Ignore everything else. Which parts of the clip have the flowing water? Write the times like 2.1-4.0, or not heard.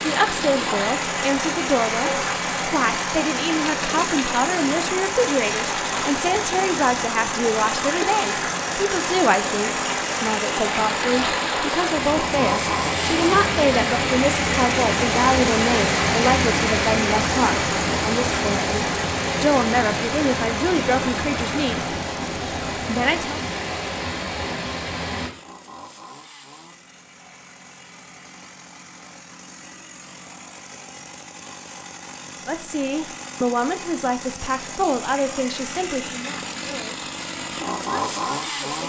0.0-25.3.